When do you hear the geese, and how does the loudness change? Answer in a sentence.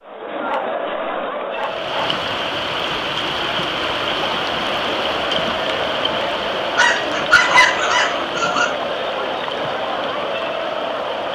The geese can't be heard in this clip.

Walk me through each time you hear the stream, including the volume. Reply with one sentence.
You can hear the stream from 1.5 to 11.2 s, getting quieter.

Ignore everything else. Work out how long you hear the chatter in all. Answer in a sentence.
You can hear the chatter for 11 seconds altogether.